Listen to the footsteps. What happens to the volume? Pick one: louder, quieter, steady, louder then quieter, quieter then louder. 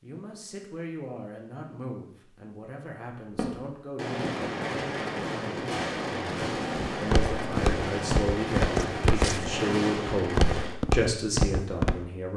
steady.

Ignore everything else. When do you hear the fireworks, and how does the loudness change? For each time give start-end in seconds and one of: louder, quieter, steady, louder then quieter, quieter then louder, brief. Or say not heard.
3.3-10.8 steady.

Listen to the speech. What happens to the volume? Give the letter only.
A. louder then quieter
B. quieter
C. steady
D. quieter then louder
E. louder
E.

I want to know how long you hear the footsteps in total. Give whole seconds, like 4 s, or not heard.
5 s.